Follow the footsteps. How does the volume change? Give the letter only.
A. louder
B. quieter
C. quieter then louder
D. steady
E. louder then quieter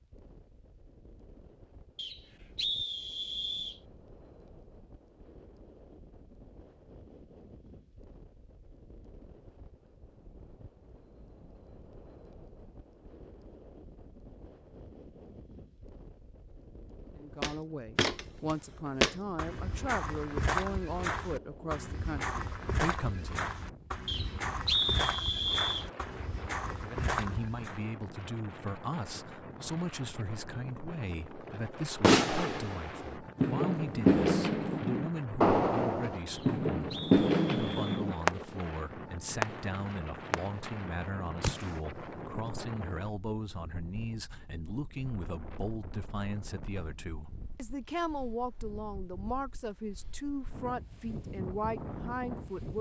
B.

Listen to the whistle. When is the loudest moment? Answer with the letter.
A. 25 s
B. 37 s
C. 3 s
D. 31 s
A.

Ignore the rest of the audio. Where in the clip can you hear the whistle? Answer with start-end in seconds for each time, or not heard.
1.9-3.8, 24.1-25.9, 36.3-38.0.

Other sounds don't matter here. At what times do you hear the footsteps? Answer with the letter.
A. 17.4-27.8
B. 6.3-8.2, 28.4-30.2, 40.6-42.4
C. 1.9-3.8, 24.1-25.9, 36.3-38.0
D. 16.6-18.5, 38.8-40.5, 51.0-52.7
A.